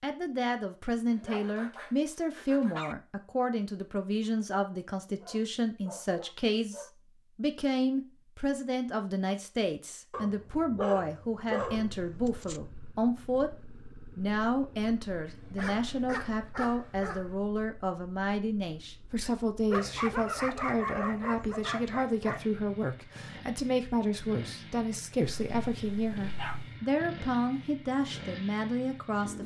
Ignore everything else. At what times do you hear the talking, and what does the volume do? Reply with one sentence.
You can hear the talking from 0.0 to 29.4 s, at a steady volume.